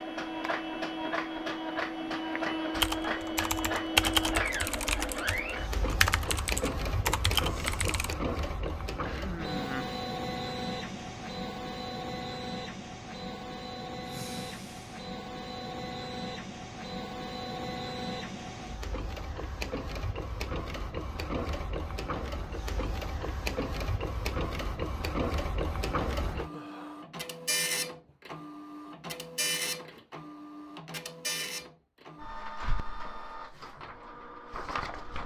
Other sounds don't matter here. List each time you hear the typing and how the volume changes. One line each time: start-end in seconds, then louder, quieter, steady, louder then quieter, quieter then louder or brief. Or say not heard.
2.8-8.2 quieter then louder.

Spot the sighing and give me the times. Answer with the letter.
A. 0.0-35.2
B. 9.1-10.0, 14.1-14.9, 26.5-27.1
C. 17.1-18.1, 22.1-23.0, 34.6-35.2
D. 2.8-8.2
B.